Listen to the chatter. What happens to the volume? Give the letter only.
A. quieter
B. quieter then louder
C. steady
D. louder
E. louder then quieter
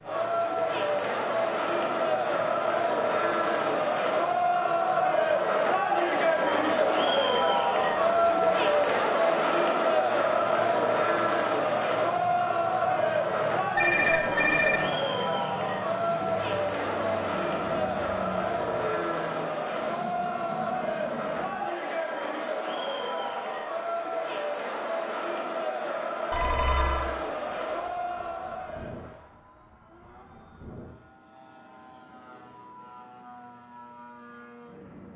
A.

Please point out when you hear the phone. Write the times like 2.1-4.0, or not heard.
2.9-3.9, 13.8-14.8, 26.3-27.1.